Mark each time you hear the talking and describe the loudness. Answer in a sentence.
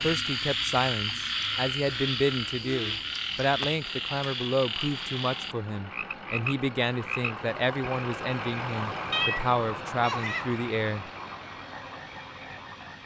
You can hear the talking from 0.0 to 11.1 s, at a steady volume.